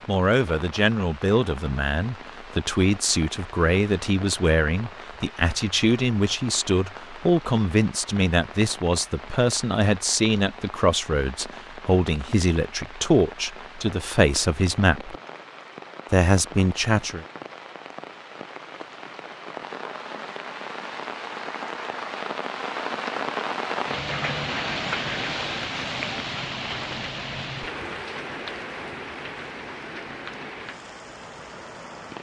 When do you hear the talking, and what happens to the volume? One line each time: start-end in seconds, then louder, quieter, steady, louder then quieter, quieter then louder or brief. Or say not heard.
0.1-15.2 steady
16.1-17.2 brief.